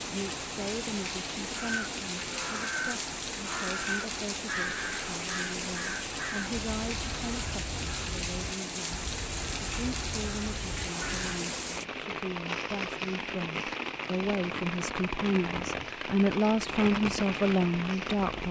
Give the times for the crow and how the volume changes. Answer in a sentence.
The crow can be heard from 1.6 to 11.4 s, getting quieter.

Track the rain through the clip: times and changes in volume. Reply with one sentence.
You can hear the rain from 0.0 to 18.4 s, at a steady volume.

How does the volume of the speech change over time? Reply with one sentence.
The volume of the speech goes up.